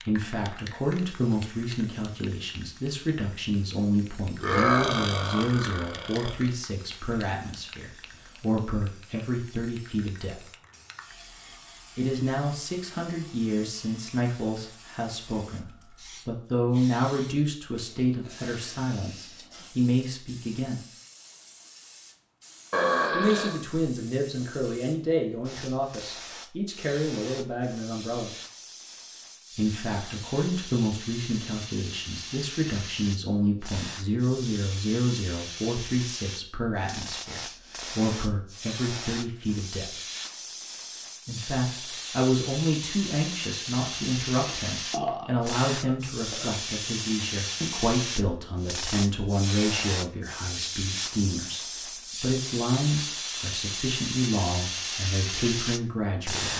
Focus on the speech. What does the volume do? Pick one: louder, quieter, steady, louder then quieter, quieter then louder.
steady.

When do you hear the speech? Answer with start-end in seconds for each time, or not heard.
0.0-10.4, 11.9-20.8, 23.1-28.3, 29.6-40.0, 41.2-56.5.